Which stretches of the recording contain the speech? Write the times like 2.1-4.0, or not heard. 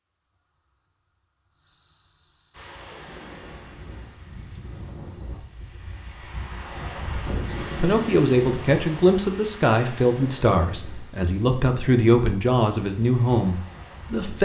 7.3-14.4.